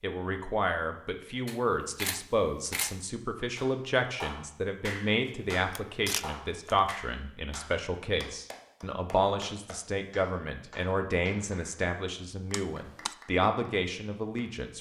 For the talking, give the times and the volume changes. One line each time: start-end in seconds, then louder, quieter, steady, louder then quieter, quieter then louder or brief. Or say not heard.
0.0-14.7 steady.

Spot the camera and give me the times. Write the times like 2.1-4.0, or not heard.
1.4-3.0, 5.2-6.8, 12.5-13.2.